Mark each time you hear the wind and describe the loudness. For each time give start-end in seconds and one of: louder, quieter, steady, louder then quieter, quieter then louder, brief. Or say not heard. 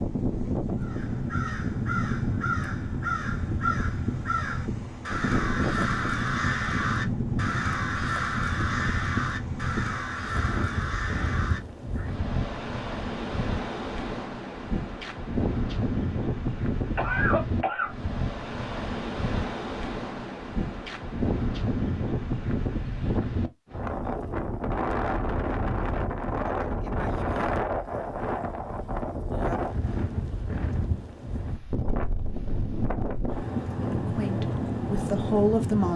0.0-35.9 steady.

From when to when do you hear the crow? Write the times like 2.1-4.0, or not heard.
0.8-12.1.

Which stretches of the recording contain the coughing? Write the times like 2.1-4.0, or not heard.
16.9-17.9.